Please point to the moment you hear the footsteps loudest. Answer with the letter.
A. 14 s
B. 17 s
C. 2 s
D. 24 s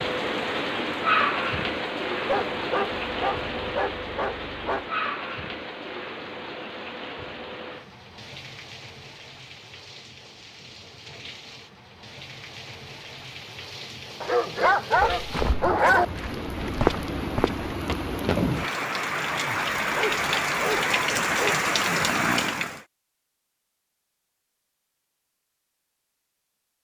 B.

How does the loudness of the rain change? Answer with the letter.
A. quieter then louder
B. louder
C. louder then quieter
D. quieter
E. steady
A.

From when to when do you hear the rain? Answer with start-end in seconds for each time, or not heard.
0.0-22.8.